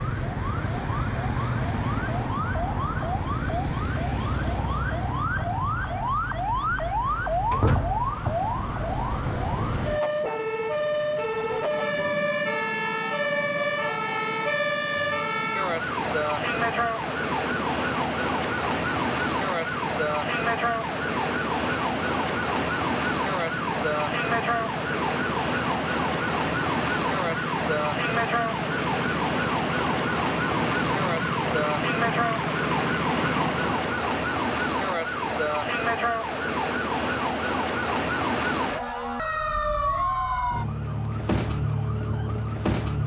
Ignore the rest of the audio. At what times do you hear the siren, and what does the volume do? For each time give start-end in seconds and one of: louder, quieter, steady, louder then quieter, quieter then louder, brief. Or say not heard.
0.0-43.0 steady.